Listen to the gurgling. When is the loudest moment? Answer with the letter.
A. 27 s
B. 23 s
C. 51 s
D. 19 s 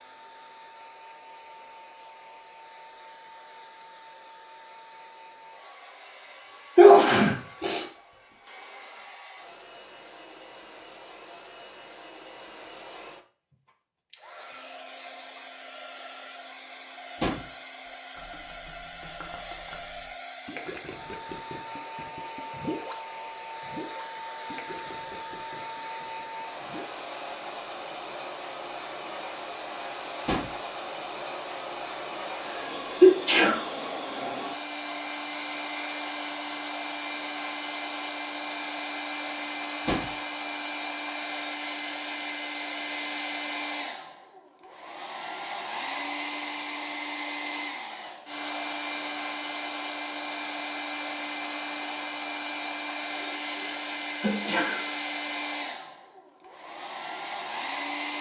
B.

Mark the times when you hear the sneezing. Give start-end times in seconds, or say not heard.
6.8-7.8, 32.5-33.6, 53.1-54.9.